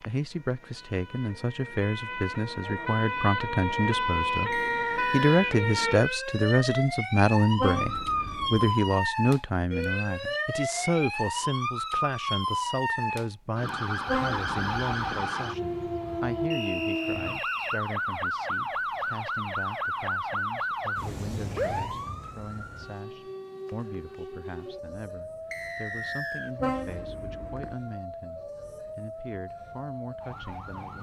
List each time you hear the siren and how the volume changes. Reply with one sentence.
The siren can be heard from 0.0 to 30.9 s, getting quieter.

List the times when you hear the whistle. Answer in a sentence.
You can hear the whistle from 4.5 to 5.5 s, from 16.5 to 17.8 s and from 25.5 to 26.6 s.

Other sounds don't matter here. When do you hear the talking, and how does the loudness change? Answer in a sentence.
You can hear the talking from 0.1 to 30.9 s, getting quieter.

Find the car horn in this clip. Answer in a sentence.
You can hear the car horn from 7.5 to 8.8 s, from 14.1 to 15.2 s and from 26.6 to 27.8 s.